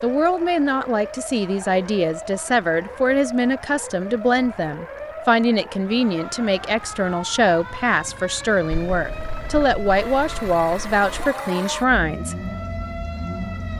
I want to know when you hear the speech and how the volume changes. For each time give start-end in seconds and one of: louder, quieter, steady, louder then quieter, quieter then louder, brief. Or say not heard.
0.0-12.4 steady.